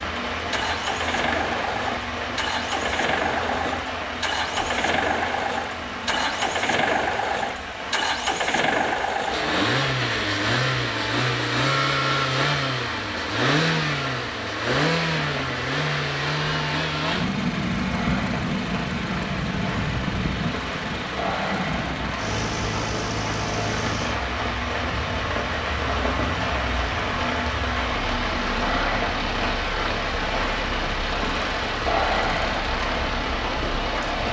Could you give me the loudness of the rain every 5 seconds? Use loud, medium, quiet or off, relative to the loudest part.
loud, medium, medium, medium, loud, loud, loud.